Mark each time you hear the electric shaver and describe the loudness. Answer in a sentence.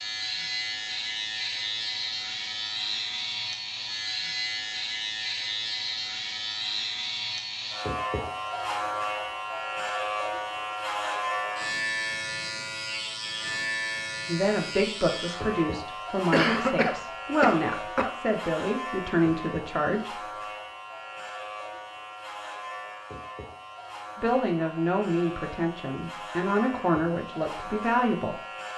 You can hear the electric shaver from 0.0 to 28.7 s, getting quieter.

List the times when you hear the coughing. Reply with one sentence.
You can hear the coughing from 16.3 to 18.1 s.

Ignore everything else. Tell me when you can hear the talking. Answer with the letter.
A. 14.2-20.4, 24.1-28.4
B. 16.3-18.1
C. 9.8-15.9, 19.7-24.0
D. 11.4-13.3
A.